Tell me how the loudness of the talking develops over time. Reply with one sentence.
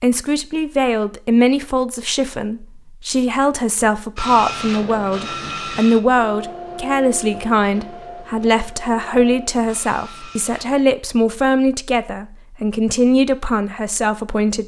The volume of the talking stays about the same.